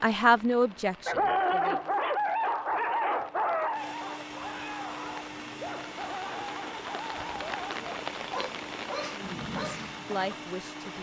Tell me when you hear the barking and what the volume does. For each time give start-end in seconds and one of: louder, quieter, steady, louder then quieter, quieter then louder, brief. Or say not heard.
1.1-10.3 quieter.